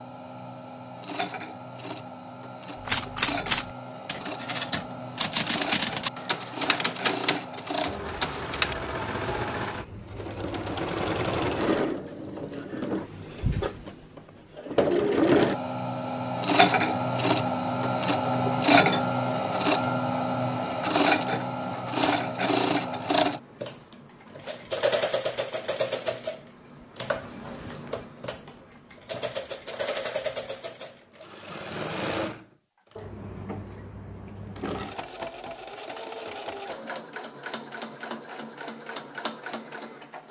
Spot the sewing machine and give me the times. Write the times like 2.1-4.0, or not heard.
0.0-40.2.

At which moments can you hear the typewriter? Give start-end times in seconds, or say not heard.
2.9-8.8.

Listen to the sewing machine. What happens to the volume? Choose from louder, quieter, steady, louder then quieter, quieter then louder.
louder then quieter.